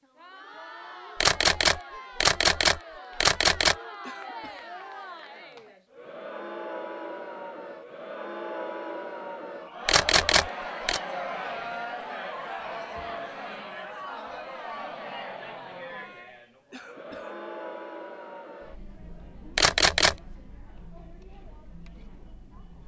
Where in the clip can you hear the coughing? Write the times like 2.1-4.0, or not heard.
4.0-4.7, 16.7-17.4.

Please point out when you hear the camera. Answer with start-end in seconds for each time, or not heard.
1.2-3.8, 9.8-11.0, 19.6-20.1.